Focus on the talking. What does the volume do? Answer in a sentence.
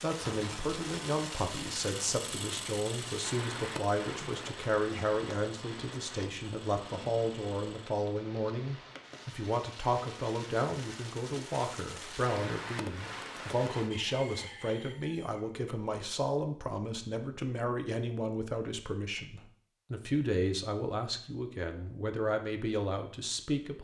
The loudness of the talking stays about the same.